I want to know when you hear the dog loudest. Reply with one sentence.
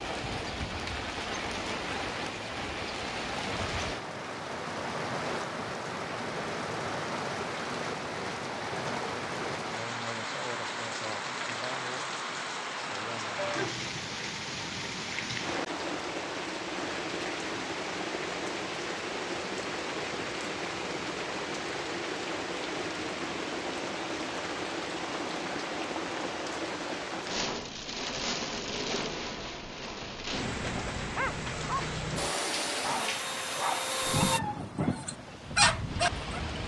The loudest moment of the dog is at 36 seconds.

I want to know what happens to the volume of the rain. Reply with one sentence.
The loudness of the rain stays about the same.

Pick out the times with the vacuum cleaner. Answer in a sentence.
The vacuum cleaner can be heard from 32.1 to 34.4 s.